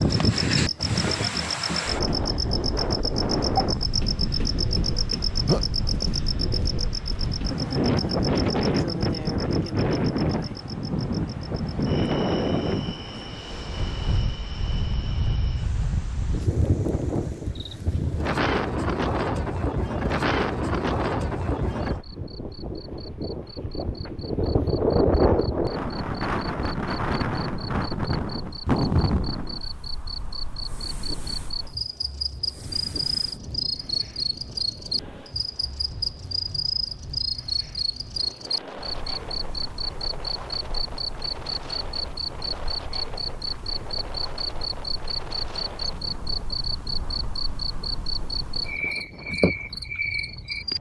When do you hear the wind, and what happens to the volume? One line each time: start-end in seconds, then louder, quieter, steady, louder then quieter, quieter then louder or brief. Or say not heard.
0.0-50.7 quieter.